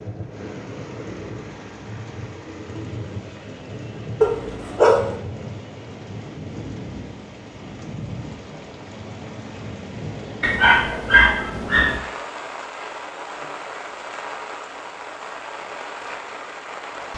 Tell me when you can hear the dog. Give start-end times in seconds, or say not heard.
4.2-5.2, 10.4-12.0.